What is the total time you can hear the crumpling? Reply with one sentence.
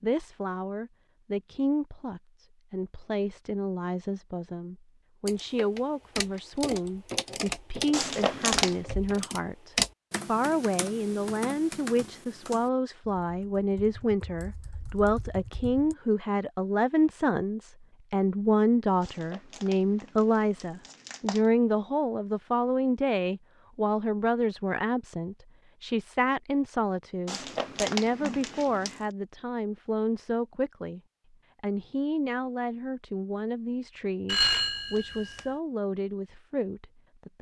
The crumpling can be heard for 5 seconds in total.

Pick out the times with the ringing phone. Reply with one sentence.
You can hear the ringing phone from 34.2 to 35.5 s.